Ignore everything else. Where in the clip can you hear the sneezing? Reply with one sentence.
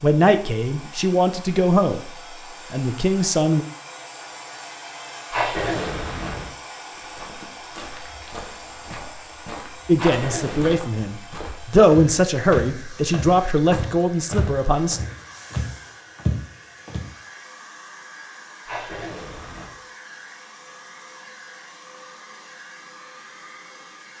The sneezing can be heard from 5.3 to 6.5 s, from 9.9 to 10.8 s and from 18.6 to 19.8 s.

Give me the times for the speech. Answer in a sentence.
You can hear the speech from 0.0 to 3.6 s and from 9.8 to 15.0 s.